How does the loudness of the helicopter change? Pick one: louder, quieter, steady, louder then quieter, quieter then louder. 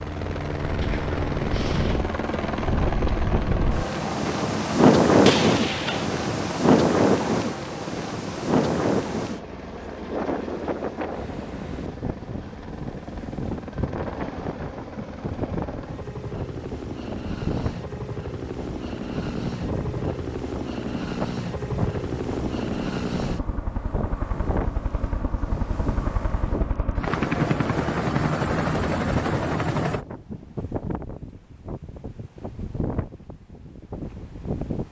quieter then louder.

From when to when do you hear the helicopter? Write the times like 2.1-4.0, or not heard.
0.0-30.1.